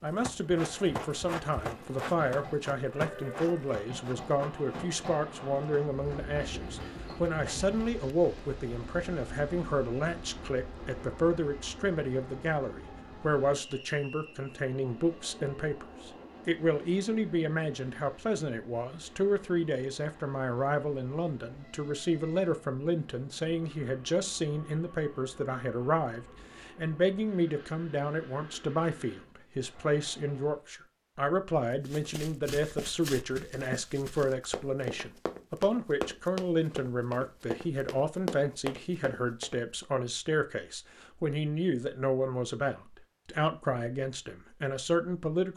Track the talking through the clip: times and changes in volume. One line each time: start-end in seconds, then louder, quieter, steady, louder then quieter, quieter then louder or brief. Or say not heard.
0.0-45.5 steady.